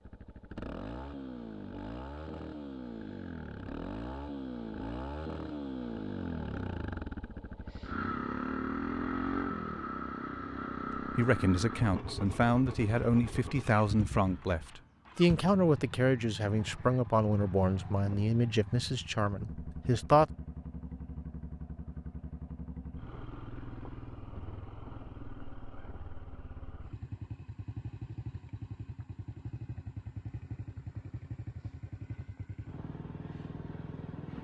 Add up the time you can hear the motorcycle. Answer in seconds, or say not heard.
34 s.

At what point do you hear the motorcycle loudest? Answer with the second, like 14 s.
9 s.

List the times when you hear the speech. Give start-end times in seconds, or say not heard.
10.9-20.2.